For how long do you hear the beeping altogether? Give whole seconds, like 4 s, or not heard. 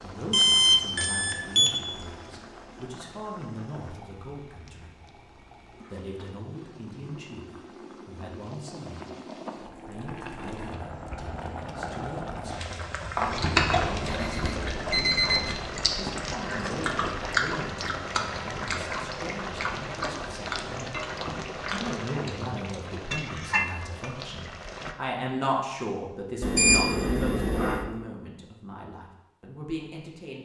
4 s.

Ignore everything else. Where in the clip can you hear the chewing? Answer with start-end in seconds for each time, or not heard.
13.2-22.9.